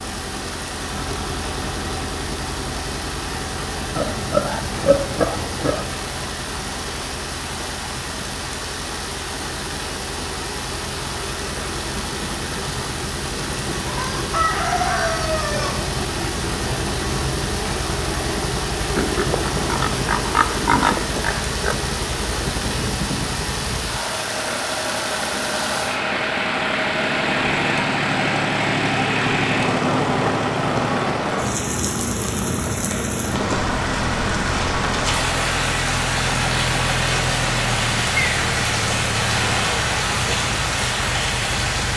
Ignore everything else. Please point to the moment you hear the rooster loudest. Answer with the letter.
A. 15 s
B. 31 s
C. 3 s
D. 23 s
A.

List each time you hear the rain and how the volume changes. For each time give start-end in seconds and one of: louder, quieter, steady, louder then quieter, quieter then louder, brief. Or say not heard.
0.0-41.9 louder.